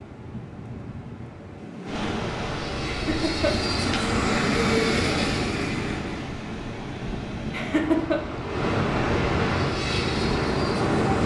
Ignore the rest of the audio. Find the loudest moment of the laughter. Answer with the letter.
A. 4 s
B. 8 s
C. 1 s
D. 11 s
B.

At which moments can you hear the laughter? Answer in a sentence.
You can hear the laughter from 2.9 to 3.7 s and from 7.5 to 8.2 s.